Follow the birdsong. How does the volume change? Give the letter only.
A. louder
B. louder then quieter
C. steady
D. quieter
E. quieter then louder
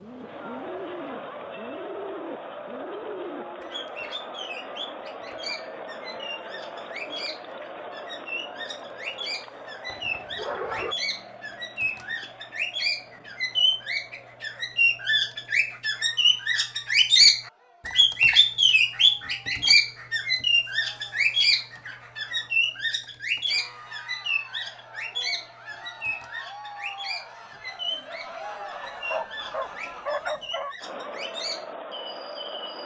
B.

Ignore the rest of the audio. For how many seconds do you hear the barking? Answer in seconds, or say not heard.
3 s.